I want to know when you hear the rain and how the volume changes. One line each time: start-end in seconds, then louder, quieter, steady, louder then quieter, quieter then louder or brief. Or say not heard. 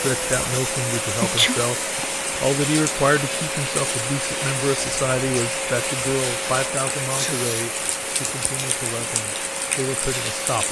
0.0-10.6 steady.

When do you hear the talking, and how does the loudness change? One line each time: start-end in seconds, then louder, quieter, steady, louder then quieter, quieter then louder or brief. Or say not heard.
0.0-1.8 brief
2.4-10.6 quieter.